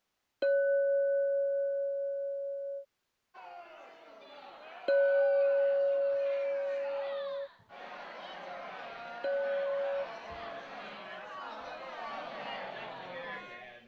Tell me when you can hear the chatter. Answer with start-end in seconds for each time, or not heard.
3.3-13.8.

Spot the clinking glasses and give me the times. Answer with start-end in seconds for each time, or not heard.
0.4-2.9, 4.8-7.5, 9.2-10.1.